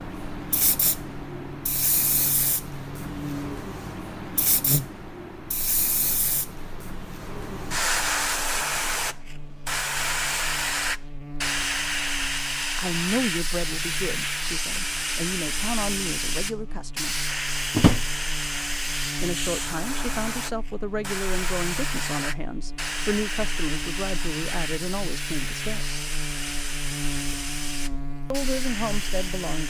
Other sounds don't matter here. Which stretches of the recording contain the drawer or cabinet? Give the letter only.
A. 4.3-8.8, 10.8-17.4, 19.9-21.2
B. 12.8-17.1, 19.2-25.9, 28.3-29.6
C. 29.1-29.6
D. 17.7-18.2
D.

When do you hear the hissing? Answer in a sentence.
You can hear the hissing from 0.0 to 29.6 s.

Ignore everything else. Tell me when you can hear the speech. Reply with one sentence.
You can hear the speech from 12.8 to 17.1 s, from 19.2 to 25.9 s and from 28.3 to 29.6 s.